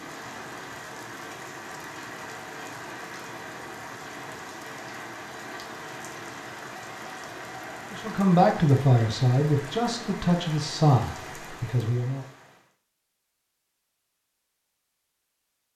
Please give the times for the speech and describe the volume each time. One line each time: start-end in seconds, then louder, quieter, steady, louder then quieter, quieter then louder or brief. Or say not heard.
7.9-12.2 quieter.